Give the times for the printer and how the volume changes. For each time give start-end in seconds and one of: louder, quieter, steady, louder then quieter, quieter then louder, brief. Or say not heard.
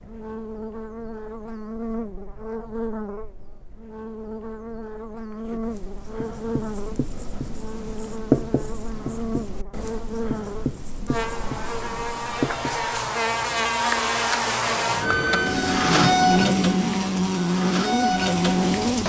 15.0-19.0 quieter then louder.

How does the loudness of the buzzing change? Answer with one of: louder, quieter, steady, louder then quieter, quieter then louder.
louder.